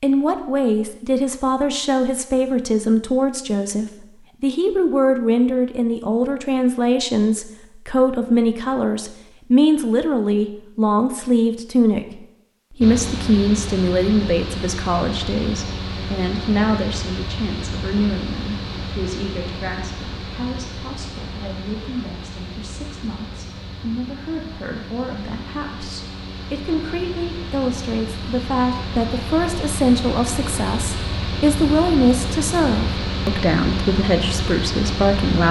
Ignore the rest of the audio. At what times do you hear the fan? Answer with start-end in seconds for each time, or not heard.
12.8-35.4.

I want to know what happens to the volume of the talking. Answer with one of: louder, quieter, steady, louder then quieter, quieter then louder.
quieter then louder.